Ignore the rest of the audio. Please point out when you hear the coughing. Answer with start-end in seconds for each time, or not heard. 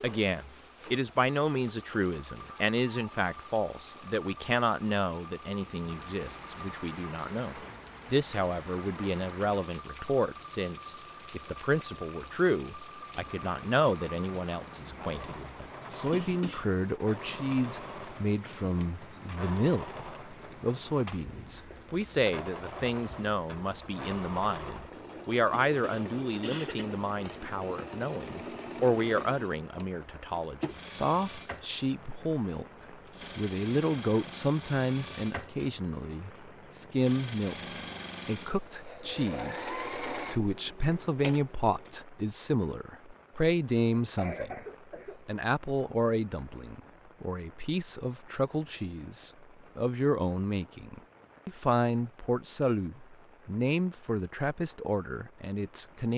16.1-16.8, 25.7-26.9, 44.0-45.2.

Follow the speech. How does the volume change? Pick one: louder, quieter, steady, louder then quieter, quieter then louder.
steady.